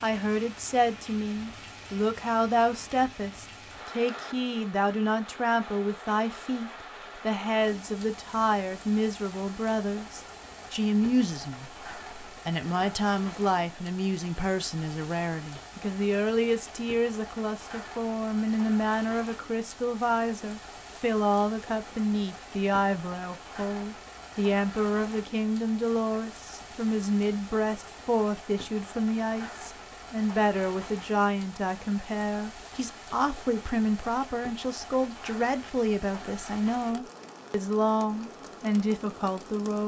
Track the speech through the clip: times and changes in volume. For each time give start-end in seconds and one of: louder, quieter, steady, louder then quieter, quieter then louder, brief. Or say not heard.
0.0-39.8 steady.